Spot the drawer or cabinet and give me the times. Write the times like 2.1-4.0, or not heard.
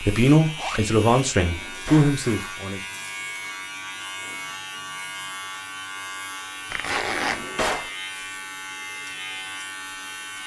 1.4-2.2, 7.1-7.9.